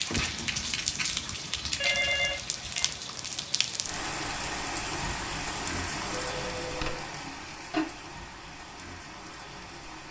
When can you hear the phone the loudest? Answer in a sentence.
The loudest moment of the phone is at 2 seconds.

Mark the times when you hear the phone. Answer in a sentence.
You can hear the phone from 1.8 to 2.9 s and from 6.2 to 7.0 s.